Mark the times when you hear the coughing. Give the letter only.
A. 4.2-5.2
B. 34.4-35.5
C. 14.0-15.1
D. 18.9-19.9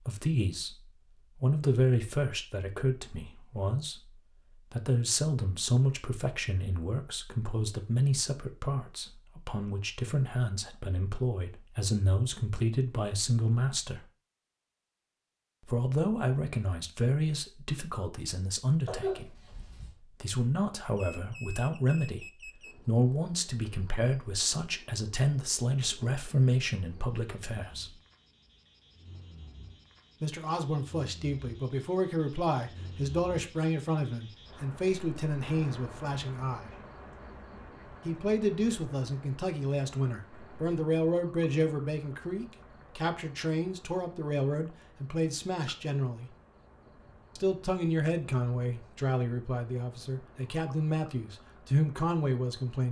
D.